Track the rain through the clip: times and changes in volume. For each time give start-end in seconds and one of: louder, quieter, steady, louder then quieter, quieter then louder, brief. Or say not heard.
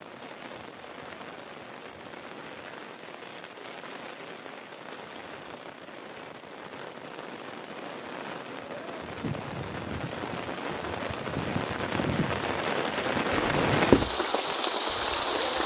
0.0-15.6 louder.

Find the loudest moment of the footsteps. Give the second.
14 s.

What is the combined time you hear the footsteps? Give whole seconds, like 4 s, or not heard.
2 s.